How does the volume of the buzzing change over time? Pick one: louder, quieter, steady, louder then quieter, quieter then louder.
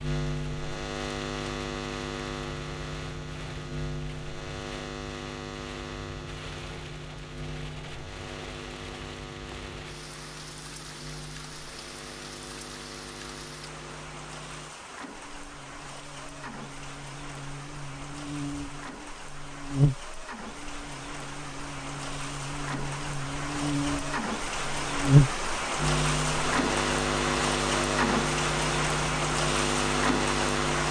quieter then louder.